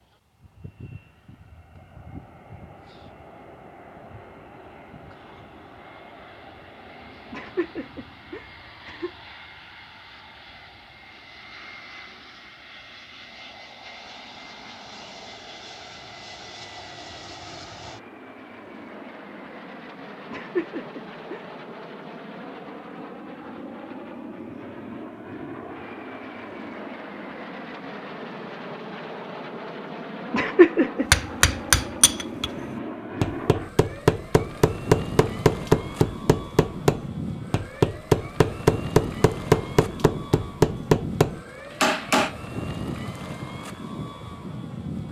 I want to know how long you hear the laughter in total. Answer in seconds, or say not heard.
4 s.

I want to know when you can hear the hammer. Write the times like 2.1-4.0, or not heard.
31.1-42.3.